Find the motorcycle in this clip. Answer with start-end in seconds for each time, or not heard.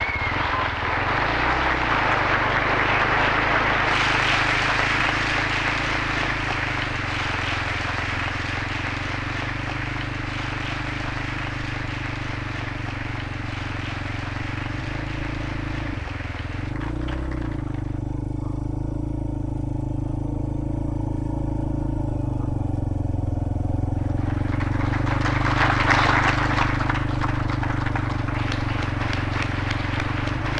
0.0-30.5.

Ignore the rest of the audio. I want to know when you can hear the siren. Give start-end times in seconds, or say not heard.
not heard.